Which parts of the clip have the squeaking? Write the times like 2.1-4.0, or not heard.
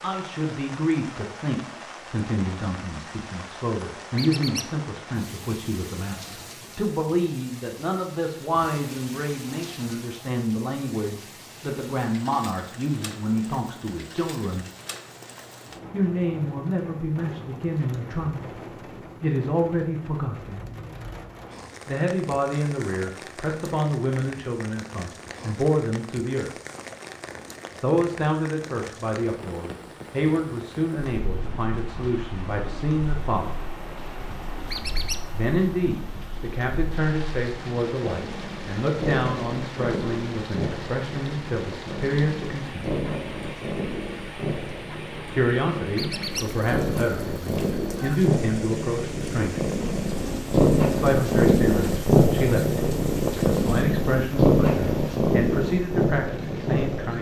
4.2-4.7, 34.7-35.2, 46.0-46.5.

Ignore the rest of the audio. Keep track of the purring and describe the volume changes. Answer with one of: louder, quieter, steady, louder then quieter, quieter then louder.
louder.